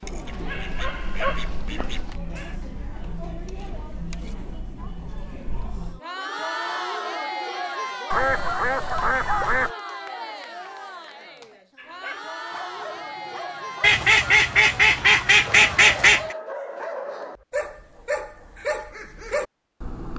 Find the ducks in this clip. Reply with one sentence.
The ducks can be heard from 0.2 to 2.2 s, from 8.1 to 9.7 s and from 13.8 to 16.4 s.